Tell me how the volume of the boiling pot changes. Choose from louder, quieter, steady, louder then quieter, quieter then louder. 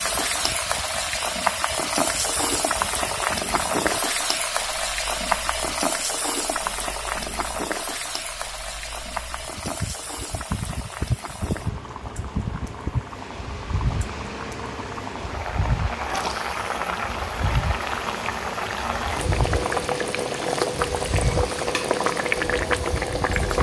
quieter then louder.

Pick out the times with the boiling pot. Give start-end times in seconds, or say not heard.
0.0-23.5.